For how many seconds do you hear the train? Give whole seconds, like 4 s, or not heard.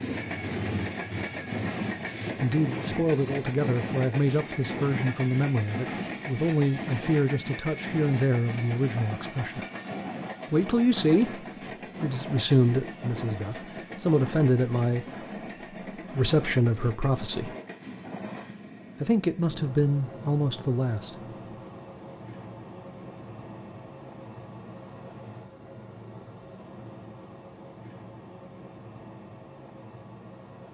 31 s.